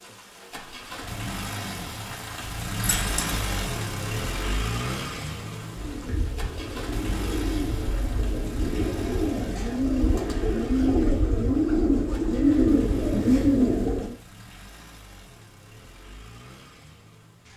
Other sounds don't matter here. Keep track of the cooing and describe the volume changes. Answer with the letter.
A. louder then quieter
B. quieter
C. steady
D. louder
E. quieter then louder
D.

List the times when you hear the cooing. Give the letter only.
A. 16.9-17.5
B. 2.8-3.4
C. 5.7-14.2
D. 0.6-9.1
C.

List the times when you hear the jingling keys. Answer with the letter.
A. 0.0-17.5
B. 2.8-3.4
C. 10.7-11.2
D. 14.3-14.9
B.